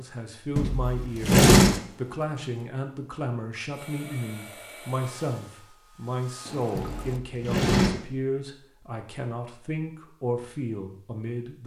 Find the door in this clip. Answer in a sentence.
You can hear the door from 0.6 to 1.8 s and from 6.8 to 7.9 s.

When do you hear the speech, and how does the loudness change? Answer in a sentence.
The speech can be heard from 0.0 to 11.6 s, at a steady volume.